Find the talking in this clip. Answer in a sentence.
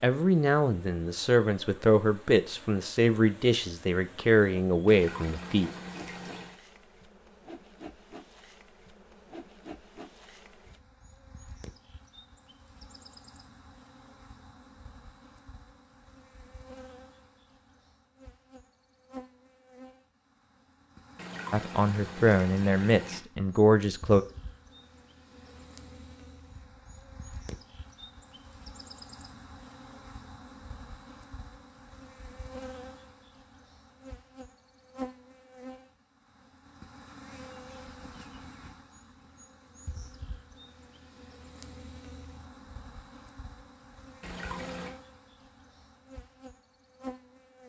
You can hear the talking from 0.0 to 5.7 s and from 21.5 to 24.2 s.